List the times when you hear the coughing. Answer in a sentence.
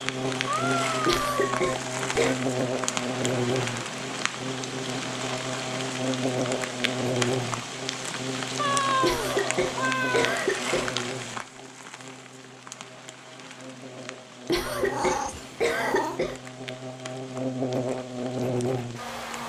You can hear the coughing from 1.1 to 2.4 s, from 9.0 to 10.9 s and from 14.4 to 16.4 s.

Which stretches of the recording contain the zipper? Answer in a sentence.
The zipper can't be heard in this clip.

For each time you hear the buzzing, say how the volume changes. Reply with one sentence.
You can hear the buzzing from 0.0 to 19.4 s, getting quieter then louder.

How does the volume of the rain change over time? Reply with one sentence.
The volume of the rain goes down.